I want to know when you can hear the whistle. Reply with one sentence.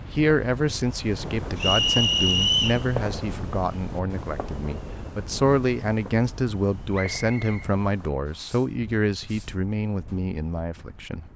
You can hear the whistle from 1.6 to 2.8 s and from 6.9 to 7.7 s.